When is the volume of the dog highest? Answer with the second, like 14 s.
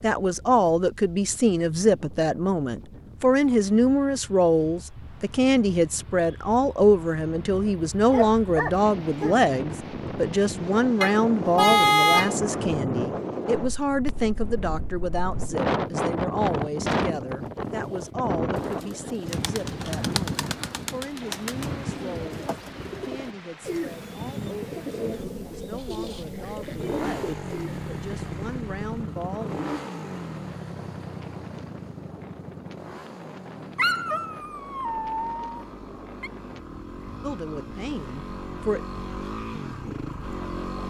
34 s.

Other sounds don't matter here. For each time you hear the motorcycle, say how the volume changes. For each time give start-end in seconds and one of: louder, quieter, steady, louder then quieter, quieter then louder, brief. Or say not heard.
26.6-40.8 quieter then louder.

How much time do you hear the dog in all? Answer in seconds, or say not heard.
4 s.